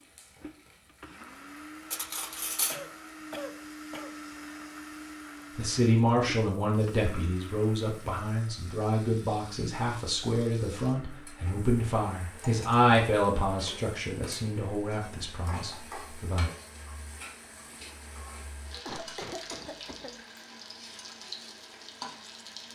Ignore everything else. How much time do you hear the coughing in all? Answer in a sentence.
You can hear the coughing for 3 seconds altogether.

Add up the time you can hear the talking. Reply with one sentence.
You can hear the talking for 11 seconds altogether.